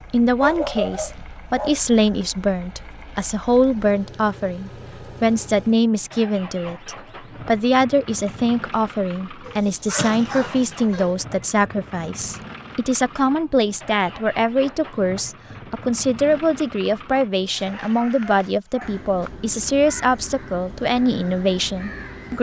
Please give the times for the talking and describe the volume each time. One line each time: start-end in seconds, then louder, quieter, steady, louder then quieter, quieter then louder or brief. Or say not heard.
0.1-22.3 steady.